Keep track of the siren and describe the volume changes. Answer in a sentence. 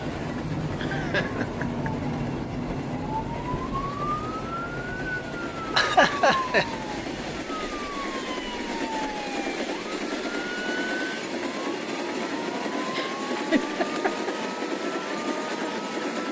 The volume of the siren goes down.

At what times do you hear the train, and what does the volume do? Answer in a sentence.
You can hear the train from 0.0 to 16.2 s, getting louder.